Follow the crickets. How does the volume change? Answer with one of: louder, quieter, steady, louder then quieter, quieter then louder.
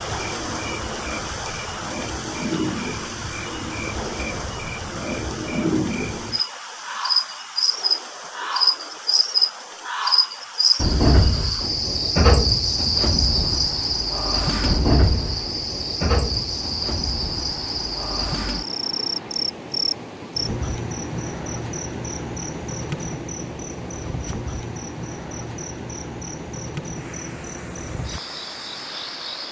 louder then quieter.